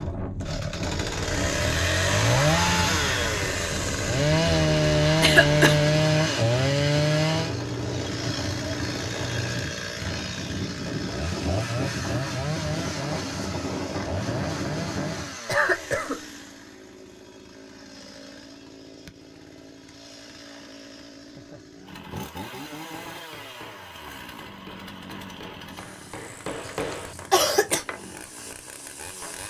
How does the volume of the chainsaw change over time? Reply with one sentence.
The volume of the chainsaw goes down.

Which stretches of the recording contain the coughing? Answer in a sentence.
You can hear the coughing from 5.2 to 5.8 s, from 15.4 to 16.2 s and from 26.6 to 27.9 s.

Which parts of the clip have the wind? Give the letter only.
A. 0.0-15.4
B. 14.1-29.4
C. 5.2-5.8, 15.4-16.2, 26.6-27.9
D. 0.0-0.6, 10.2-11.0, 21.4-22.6
A.